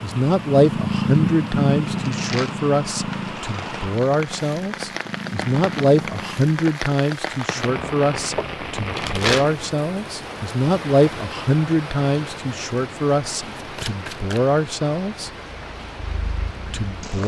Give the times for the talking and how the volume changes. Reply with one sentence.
You can hear the talking from 0.0 to 15.3 s, at a steady volume; and briefly from 16.7 to 17.2 s.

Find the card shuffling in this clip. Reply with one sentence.
You can hear the card shuffling from 1.9 to 3.9 s, from 8.3 to 9.6 s and from 13.6 to 14.4 s.